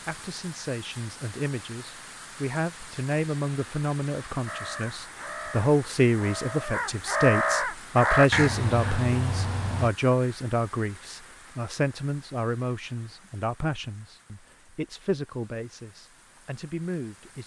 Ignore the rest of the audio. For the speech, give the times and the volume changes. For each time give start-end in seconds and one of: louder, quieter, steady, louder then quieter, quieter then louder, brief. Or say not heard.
0.1-17.4 louder then quieter.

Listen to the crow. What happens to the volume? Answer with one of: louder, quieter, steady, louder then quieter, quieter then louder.
louder then quieter.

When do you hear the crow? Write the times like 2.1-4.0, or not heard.
4.5-9.9.